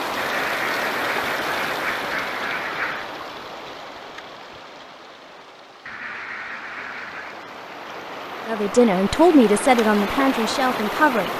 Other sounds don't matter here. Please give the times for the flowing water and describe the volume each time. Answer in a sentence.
You can hear the flowing water from 0.0 to 11.3 s, getting quieter then louder.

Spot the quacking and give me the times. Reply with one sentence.
You can hear the quacking from 0.1 to 3.1 s and from 5.8 to 7.5 s.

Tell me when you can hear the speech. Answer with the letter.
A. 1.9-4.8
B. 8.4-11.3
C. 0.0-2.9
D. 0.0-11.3
B.